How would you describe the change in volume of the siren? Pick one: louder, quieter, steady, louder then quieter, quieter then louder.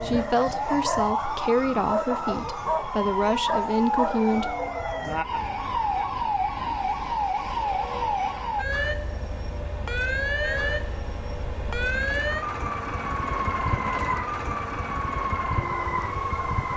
steady.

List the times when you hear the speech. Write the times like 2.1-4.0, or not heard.
0.0-4.5.